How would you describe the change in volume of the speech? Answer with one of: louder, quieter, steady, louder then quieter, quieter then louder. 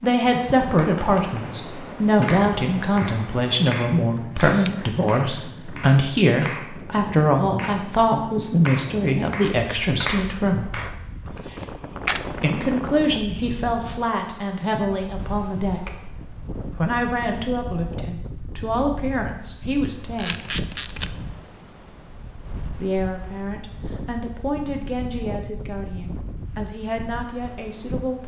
quieter.